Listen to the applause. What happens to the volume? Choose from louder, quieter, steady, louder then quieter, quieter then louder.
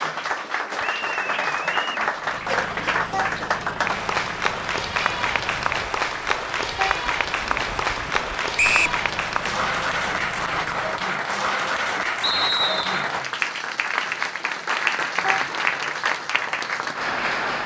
steady.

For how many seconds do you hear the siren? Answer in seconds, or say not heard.
not heard.